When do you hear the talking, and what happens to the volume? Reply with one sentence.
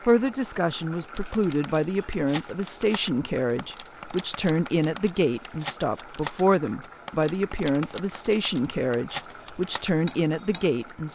You can hear the talking from 0.0 to 11.1 s, at a steady volume.